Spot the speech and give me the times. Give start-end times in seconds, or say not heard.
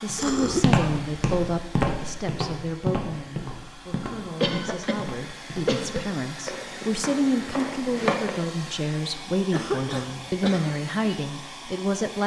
0.0-12.2.